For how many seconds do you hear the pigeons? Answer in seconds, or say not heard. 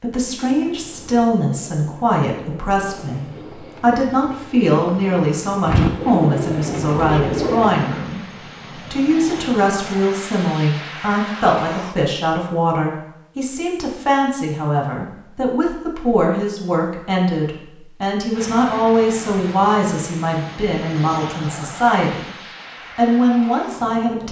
8 s.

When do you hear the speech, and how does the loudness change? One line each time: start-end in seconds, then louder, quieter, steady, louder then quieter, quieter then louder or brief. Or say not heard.
0.0-22.3 steady
22.9-24.2 brief.